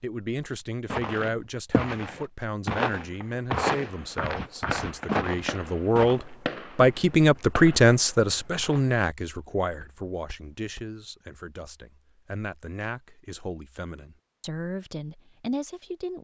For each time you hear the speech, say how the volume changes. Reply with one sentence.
The speech can be heard from 0.0 to 16.2 s, getting louder then quieter.